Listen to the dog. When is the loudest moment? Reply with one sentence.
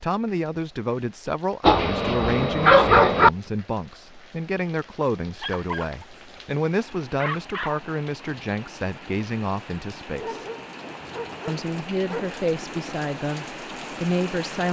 The loudest moment of the dog is at 3 seconds.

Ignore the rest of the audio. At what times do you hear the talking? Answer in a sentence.
The talking can be heard from 0.0 to 10.4 s and from 11.4 to 14.6 s.